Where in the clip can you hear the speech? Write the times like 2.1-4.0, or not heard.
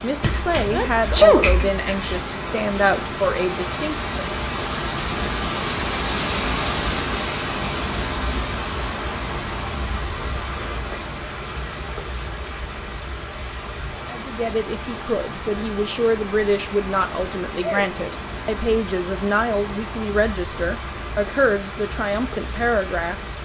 0.0-4.3, 14.1-23.1.